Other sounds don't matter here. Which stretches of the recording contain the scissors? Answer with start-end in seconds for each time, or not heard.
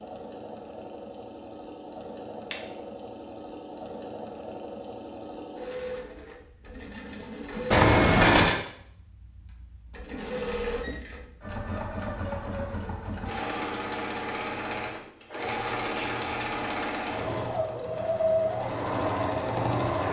2.5-3.1, 7.7-8.6, 15.4-16.7.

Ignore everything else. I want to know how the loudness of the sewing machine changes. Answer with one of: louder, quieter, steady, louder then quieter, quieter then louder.
louder.